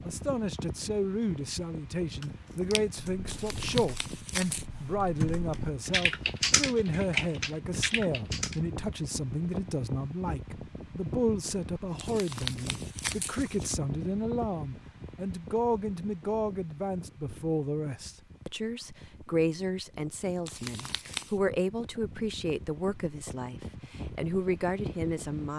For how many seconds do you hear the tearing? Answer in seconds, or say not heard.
4 s.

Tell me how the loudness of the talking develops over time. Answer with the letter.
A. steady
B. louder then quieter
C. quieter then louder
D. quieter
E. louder
A.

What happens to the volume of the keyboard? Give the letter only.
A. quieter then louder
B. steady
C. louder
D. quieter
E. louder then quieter
C.